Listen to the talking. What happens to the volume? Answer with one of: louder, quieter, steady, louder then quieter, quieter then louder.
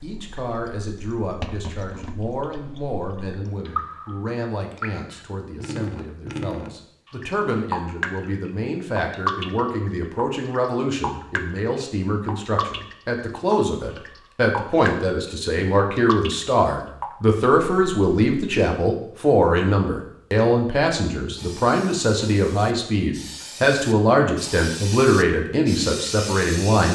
louder.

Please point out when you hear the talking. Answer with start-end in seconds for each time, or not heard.
0.0-26.9.